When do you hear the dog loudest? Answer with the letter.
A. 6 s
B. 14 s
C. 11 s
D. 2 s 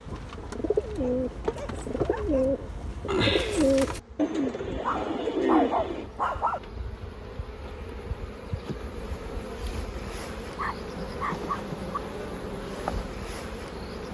A.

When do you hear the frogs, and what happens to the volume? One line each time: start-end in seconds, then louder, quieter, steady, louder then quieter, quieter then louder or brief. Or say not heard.
not heard.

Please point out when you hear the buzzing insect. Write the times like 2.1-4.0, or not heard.
0.0-14.0.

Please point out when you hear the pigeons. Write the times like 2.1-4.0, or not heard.
0.1-6.1.